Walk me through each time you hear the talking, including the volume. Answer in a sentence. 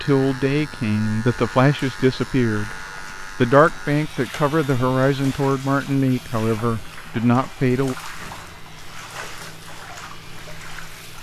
You can hear the talking briefly from 0.0 to 2.8 s; and from 3.4 to 8.0 s, at a steady volume.